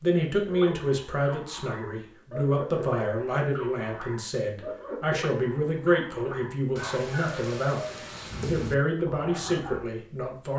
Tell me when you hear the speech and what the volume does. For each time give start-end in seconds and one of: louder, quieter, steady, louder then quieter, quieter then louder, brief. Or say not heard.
0.0-10.5 steady.